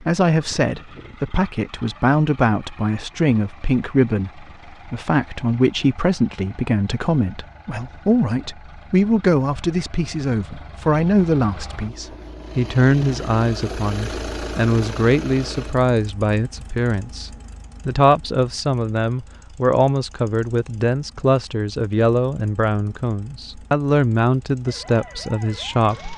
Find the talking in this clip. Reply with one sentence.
You can hear the talking from 0.0 to 26.1 s.